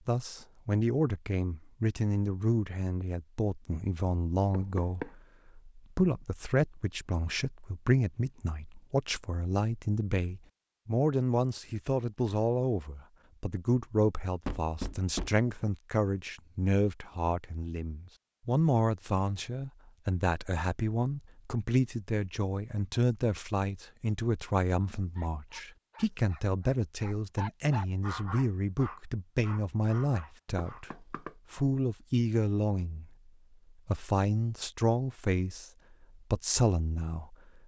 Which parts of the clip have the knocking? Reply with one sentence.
You can hear the knocking from 4.5 to 5.1 s, from 14.4 to 15.4 s and from 30.6 to 31.3 s.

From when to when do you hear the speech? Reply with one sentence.
You can hear the speech from 0.1 to 33.1 s and from 33.9 to 37.6 s.